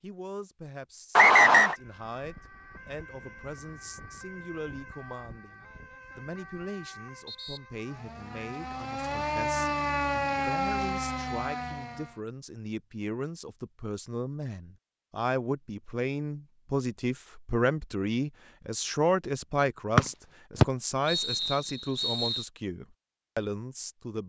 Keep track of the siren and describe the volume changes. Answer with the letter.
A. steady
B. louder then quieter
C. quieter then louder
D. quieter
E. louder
E.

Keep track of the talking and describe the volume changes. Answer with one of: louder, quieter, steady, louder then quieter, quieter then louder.
louder.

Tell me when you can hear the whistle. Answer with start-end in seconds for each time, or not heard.
1.1-1.8, 19.9-22.4.